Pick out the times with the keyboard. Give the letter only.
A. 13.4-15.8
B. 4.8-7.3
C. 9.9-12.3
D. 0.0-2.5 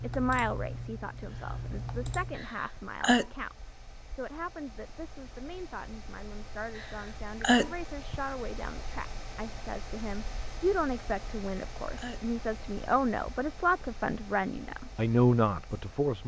D.